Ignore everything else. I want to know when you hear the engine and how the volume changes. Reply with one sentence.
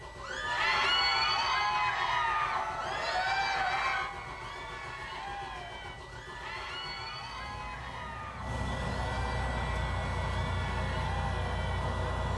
The engine can be heard from 0.0 to 12.3 s, getting louder.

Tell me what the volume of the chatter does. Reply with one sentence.
The volume of the chatter goes down.